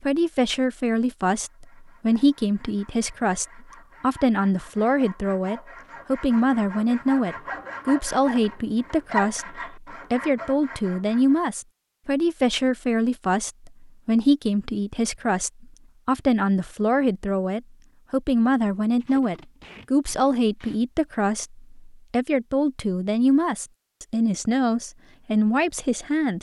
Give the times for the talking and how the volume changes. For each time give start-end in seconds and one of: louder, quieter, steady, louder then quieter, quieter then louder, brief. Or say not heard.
0.0-26.3 steady.